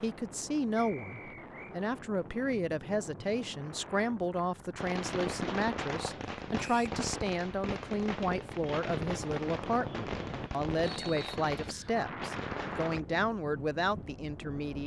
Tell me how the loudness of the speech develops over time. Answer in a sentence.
The volume of the speech stays about the same.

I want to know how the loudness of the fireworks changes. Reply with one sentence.
The volume of the fireworks stays about the same.